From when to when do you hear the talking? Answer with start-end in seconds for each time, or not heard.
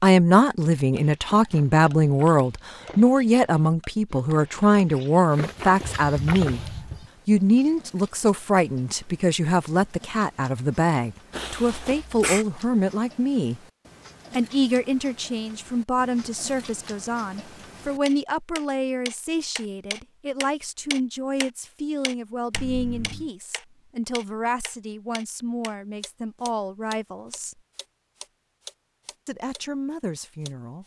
0.0-6.6, 7.2-13.6, 14.3-27.6, 29.2-30.8.